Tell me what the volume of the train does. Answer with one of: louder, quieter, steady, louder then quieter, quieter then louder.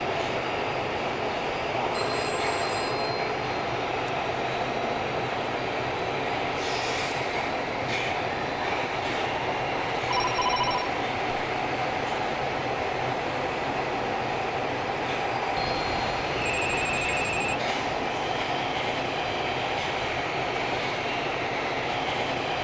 steady.